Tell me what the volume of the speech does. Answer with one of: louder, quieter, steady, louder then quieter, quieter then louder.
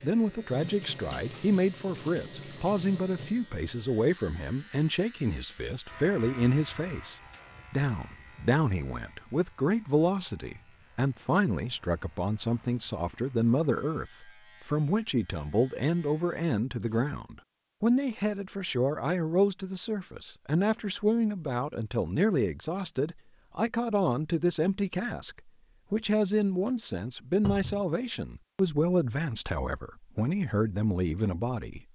steady.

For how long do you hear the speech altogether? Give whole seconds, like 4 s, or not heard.
32 s.